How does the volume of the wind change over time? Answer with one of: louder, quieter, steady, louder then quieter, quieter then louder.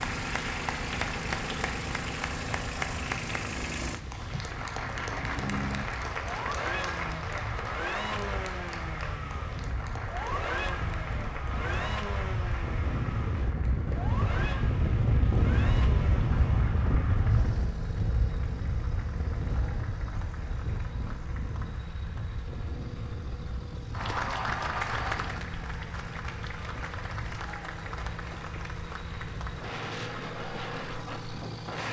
louder then quieter.